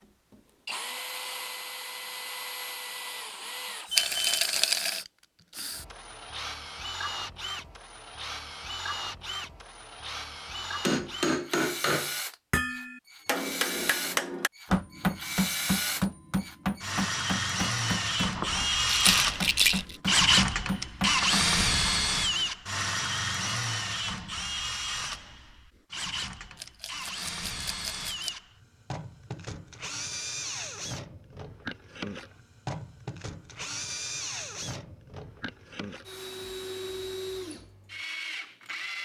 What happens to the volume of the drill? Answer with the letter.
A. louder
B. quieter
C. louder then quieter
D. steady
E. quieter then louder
C.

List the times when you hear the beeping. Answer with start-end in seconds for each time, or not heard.
3.9-4.5.